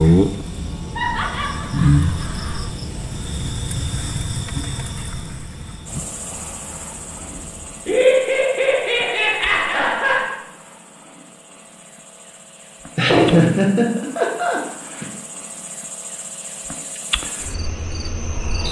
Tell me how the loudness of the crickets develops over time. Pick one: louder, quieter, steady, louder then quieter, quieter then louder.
quieter then louder.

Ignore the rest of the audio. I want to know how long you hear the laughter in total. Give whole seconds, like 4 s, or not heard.
6 s.